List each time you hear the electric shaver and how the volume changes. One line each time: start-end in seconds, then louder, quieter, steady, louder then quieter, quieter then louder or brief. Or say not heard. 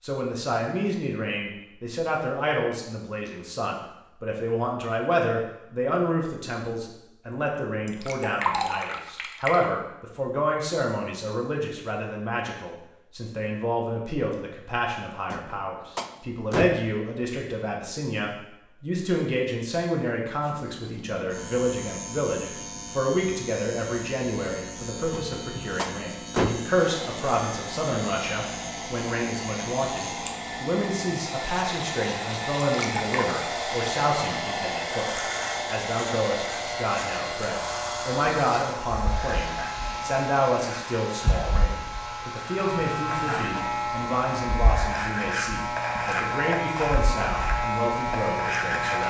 20.4-49.0 louder.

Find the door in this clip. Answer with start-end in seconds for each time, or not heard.
15.3-16.9, 25.1-26.8.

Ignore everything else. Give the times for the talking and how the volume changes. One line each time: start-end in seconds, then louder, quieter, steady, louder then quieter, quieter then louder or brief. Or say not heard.
0.0-49.0 steady.